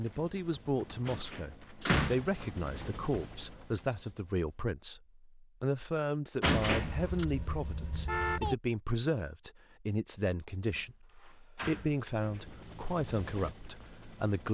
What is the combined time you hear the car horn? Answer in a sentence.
You can hear the car horn for 2 seconds altogether.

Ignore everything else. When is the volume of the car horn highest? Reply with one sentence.
The loudest moment of the car horn is at 8 seconds.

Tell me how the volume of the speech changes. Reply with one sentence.
The volume of the speech stays about the same.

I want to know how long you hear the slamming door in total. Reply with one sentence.
The slamming door can be heard for 4 seconds in total.